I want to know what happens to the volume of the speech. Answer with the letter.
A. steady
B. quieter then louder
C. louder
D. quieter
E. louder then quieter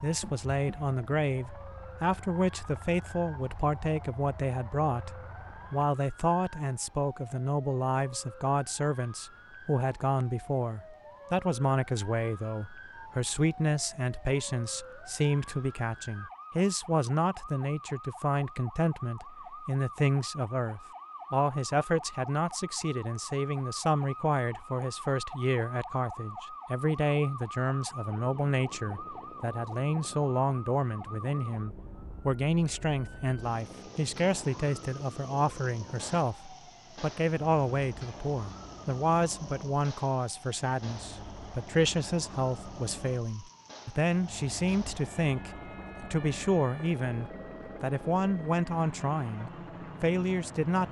A.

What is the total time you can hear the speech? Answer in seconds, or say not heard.
51 s.